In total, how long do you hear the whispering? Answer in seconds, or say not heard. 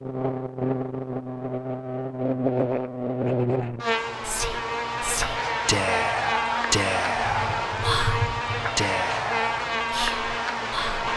7 s.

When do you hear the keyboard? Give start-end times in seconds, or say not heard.
7.2-8.7.